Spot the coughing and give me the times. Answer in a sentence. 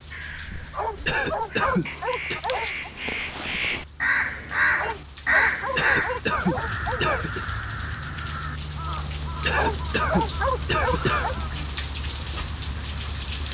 You can hear the coughing from 1.1 to 2.4 s, from 5.8 to 7.5 s and from 9.4 to 11.4 s.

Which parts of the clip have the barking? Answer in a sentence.
You can hear the barking from 0.7 to 2.9 s, from 4.8 to 7.2 s and from 9.5 to 11.3 s.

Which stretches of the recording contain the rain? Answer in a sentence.
You can hear the rain from 0.0 to 13.5 s.